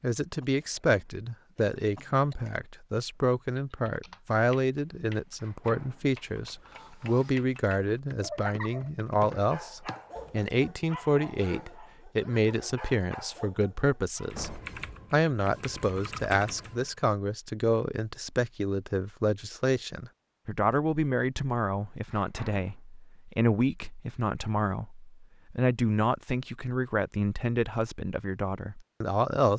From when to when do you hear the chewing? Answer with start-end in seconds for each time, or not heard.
not heard.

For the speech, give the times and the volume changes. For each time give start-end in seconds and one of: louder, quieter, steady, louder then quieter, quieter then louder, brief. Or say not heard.
0.0-29.5 steady.